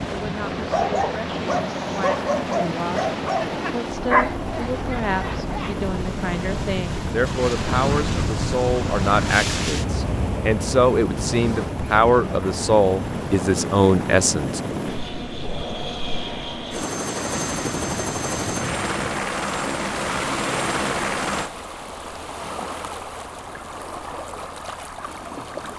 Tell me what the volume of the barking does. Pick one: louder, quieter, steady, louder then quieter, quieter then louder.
louder then quieter.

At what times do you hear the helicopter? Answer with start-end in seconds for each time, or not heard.
0.0-21.5.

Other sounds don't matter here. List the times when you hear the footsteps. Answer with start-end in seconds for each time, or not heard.
not heard.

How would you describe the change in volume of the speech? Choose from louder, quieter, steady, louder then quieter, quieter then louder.
louder.